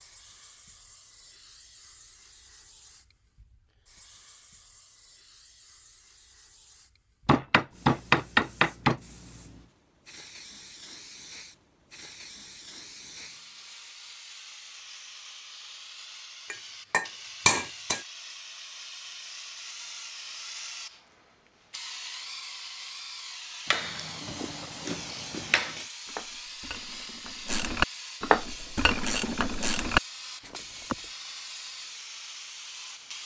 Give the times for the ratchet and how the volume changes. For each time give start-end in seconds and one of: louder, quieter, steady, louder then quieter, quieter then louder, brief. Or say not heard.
24.2-30.9 louder.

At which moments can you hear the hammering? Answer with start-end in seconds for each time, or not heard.
7.2-9.0, 16.5-18.0, 23.7-25.9.